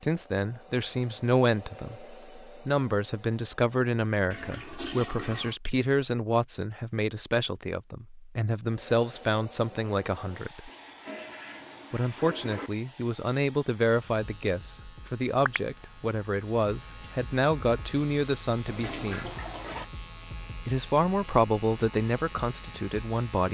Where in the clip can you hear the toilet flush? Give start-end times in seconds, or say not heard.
4.3-5.5, 10.7-12.7, 18.6-19.9.